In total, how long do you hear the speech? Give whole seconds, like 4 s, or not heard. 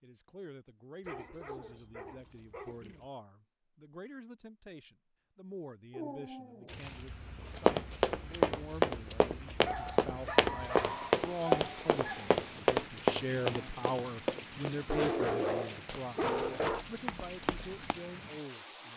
19 s.